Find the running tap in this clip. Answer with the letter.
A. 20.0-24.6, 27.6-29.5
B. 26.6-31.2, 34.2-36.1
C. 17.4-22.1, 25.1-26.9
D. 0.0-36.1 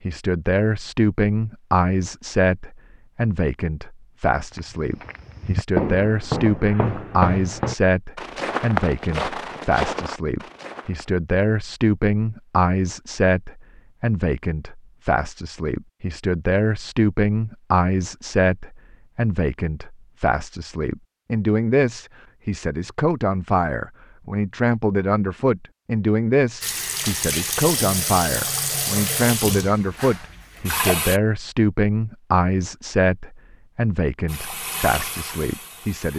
B.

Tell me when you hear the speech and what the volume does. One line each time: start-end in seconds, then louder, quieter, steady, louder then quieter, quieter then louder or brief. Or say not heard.
0.0-36.1 steady.